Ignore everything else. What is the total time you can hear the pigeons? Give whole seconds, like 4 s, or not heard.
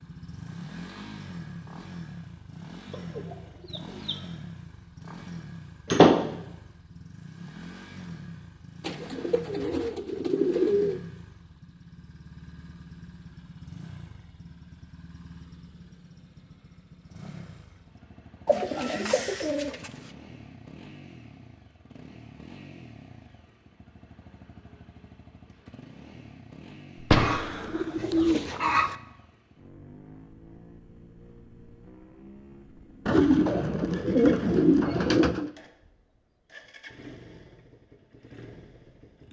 9 s.